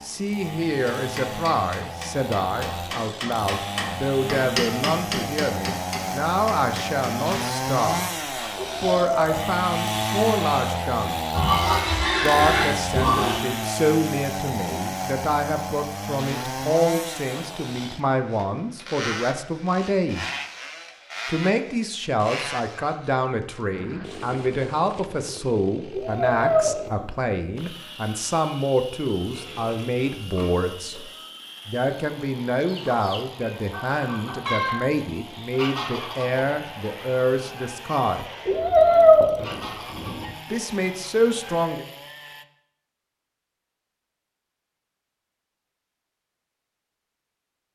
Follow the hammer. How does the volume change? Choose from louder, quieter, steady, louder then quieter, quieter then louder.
louder then quieter.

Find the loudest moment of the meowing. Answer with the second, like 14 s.
39 s.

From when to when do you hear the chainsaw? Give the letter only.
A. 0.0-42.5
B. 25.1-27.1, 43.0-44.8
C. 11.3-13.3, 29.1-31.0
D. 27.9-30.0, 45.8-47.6
A.